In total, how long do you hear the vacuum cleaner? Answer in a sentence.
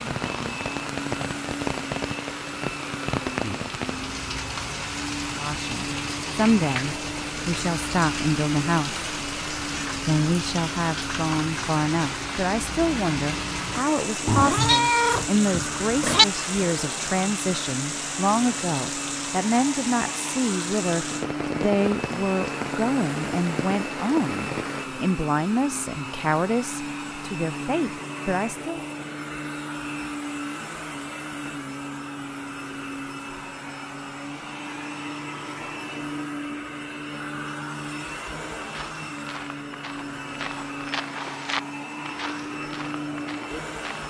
The vacuum cleaner can be heard for 44 seconds in total.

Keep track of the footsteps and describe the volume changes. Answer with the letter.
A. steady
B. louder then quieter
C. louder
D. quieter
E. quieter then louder
B.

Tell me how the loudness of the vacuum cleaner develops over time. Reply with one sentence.
The volume of the vacuum cleaner stays about the same.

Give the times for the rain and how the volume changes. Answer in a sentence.
The rain can be heard from 0.0 to 24.9 s, at a steady volume.